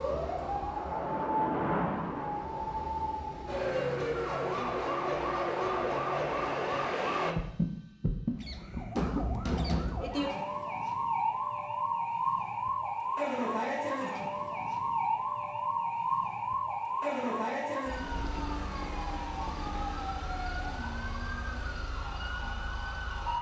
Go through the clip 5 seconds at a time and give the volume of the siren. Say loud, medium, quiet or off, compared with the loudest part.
loud, loud, loud, loud, medium.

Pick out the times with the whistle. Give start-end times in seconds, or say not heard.
not heard.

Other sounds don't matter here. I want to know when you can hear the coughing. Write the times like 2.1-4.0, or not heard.
8.4-9.8.